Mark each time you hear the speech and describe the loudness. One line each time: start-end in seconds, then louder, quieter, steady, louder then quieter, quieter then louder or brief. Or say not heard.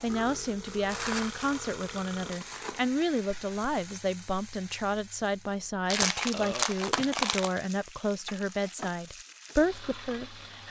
0.0-10.6 steady.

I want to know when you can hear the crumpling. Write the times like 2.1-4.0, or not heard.
0.8-2.9, 5.9-7.6.